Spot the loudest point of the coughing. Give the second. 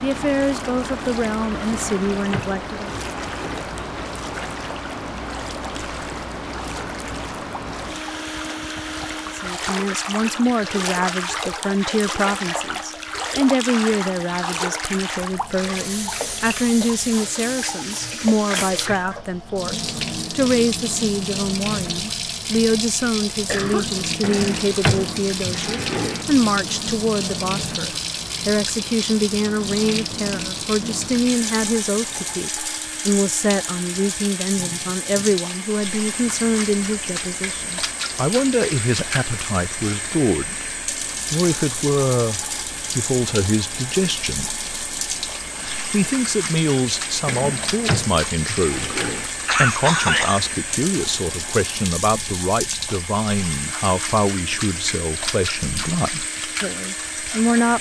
50 s.